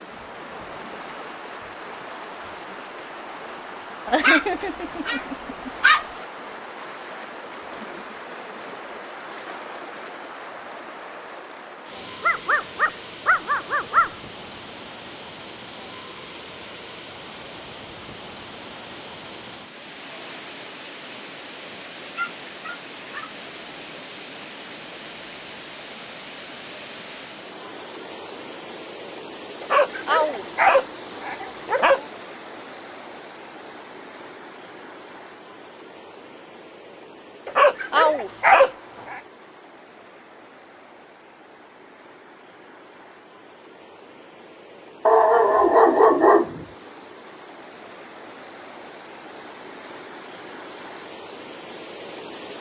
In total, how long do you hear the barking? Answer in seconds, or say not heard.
11 s.